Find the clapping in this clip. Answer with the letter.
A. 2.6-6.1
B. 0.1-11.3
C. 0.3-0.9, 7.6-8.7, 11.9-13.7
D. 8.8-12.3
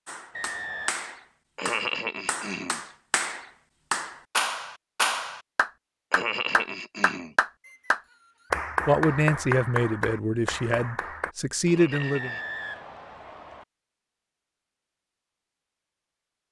B.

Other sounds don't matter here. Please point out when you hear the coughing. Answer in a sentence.
You can hear the coughing from 1.6 to 2.8 s, from 6.1 to 7.3 s and from 11.7 to 12.4 s.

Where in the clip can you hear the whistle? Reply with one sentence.
You can hear the whistle from 0.3 to 0.9 s, from 7.6 to 8.7 s and from 11.9 to 13.7 s.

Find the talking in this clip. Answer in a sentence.
The talking can be heard from 8.8 to 12.3 s.